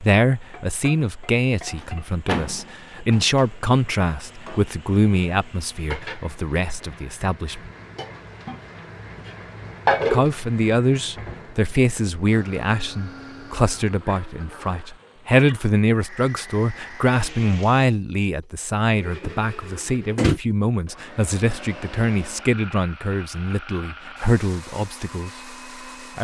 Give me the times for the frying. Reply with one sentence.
The frying can be heard from 0.0 to 16.2 s.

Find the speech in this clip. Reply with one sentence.
You can hear the speech from 0.0 to 7.7 s and from 10.1 to 25.3 s.